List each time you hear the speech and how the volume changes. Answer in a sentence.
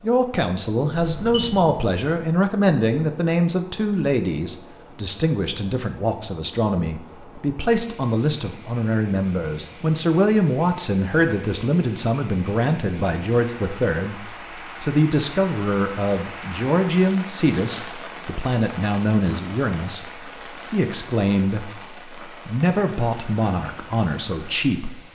You can hear the speech from 0.0 to 24.9 s, at a steady volume.